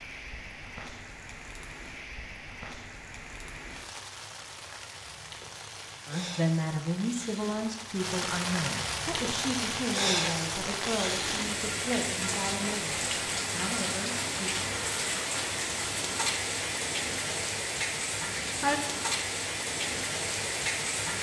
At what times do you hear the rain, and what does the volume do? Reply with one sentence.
You can hear the rain from 0.0 to 21.1 s, getting louder.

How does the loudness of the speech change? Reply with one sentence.
The loudness of the speech goes down.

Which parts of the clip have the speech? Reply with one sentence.
The speech can be heard from 6.0 to 14.7 s.